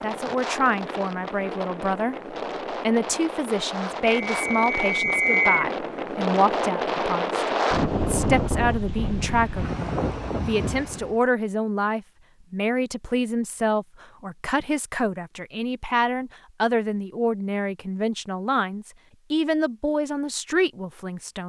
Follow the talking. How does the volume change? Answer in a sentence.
The loudness of the talking stays about the same.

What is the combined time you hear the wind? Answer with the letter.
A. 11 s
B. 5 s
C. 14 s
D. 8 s
A.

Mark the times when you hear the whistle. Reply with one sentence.
You can hear the whistle from 4.2 to 5.7 s.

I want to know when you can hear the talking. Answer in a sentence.
You can hear the talking from 0.0 to 21.4 s.